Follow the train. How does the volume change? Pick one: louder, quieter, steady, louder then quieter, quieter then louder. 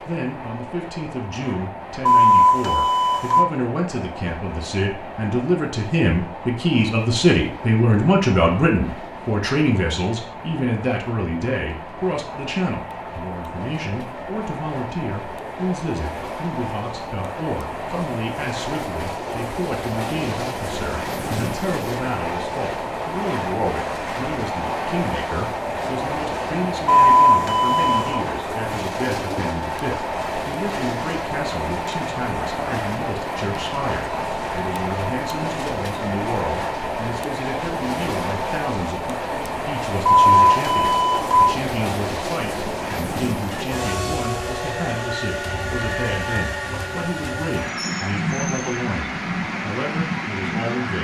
louder.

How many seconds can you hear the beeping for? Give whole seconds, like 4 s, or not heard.
4 s.